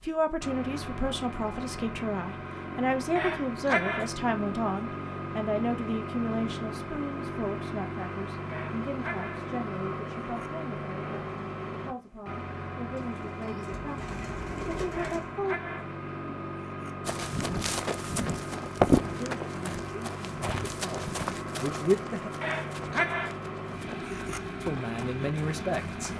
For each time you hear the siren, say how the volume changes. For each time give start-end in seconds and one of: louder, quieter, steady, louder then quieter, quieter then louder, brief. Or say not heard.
not heard.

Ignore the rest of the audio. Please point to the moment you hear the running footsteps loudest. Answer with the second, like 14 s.
19 s.